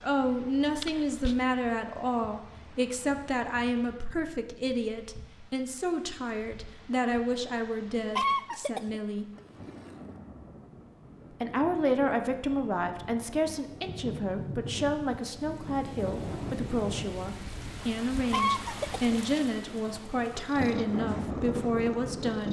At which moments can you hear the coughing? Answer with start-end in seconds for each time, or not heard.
0.8-1.4, 8.2-10.1, 18.3-19.6.